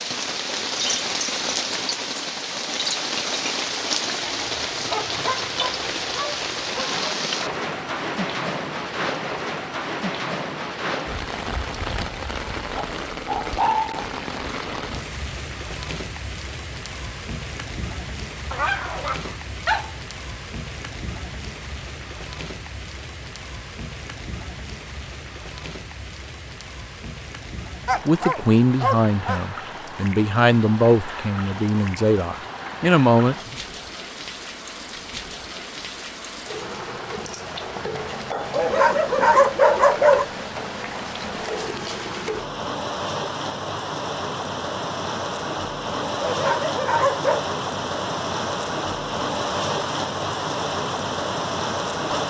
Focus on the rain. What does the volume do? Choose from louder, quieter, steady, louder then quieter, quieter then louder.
quieter then louder.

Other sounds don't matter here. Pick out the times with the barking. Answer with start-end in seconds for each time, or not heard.
4.3-7.0, 12.7-14.1, 18.5-20.0, 27.9-29.4, 38.3-40.2, 46.0-47.5.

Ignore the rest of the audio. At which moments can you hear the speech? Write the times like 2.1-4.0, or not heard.
28.1-33.5.